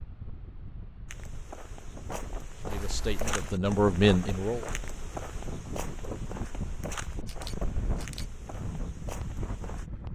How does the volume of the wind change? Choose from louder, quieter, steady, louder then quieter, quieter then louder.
louder.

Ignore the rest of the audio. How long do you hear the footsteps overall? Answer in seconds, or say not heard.
9 s.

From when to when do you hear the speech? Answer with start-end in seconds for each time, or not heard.
2.7-4.7.